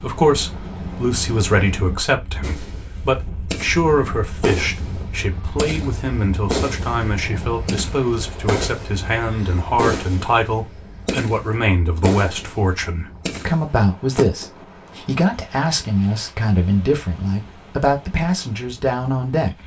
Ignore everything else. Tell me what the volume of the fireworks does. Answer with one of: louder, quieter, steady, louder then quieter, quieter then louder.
steady.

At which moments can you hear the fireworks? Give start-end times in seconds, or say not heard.
2.4-9.1, 9.8-14.2.